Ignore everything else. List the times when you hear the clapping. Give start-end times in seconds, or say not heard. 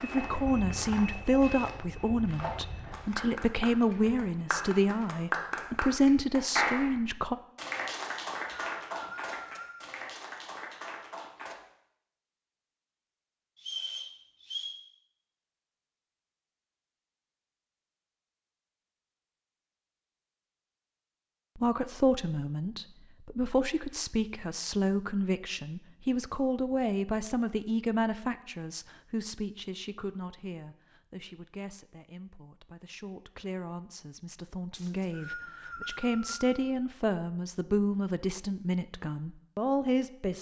2.9-11.6.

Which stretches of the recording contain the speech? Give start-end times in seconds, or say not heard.
0.0-7.3, 21.6-40.3.